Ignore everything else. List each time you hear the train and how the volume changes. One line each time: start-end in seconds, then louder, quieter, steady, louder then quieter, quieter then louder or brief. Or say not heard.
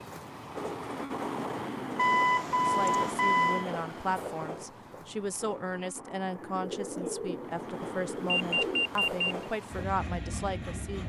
0.0-11.0 quieter then louder.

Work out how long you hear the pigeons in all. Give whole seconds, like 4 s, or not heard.
3 s.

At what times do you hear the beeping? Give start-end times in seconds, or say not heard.
1.9-3.6, 8.5-9.3.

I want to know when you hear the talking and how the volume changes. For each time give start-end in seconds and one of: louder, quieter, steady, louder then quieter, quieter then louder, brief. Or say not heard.
2.6-11.0 steady.